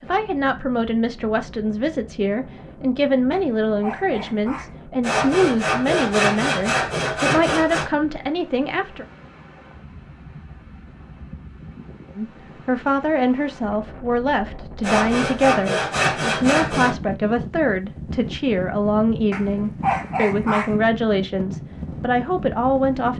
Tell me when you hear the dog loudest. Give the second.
20 s.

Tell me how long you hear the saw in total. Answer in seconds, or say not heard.
5 s.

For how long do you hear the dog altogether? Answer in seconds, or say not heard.
3 s.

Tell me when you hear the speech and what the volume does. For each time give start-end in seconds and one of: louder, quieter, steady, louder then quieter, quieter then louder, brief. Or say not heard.
0.0-9.1 steady
12.2-23.1 steady.